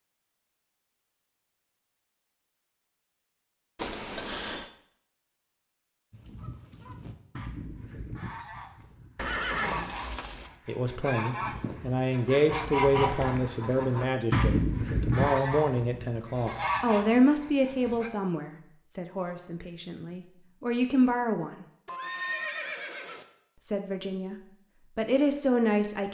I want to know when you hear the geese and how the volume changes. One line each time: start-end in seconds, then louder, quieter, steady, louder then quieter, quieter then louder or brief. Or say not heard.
6.1-18.1 louder then quieter.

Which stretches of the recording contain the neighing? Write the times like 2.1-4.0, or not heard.
3.8-4.7, 9.2-10.5, 21.9-23.2.